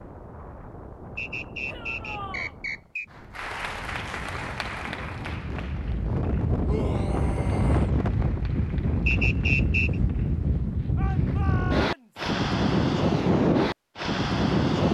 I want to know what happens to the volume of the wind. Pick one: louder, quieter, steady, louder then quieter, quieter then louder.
louder.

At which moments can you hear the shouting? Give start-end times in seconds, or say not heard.
1.6-2.5, 6.7-7.9, 10.9-12.3.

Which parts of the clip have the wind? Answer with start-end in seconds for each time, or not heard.
0.0-14.9.